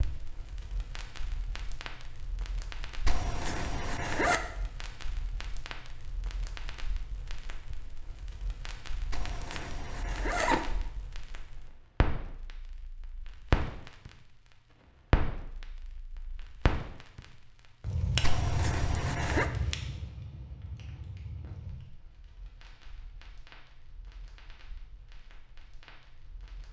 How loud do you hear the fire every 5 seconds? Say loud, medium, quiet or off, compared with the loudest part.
quiet, quiet, loud, loud, quiet, quiet.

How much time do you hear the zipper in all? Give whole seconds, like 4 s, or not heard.
4 s.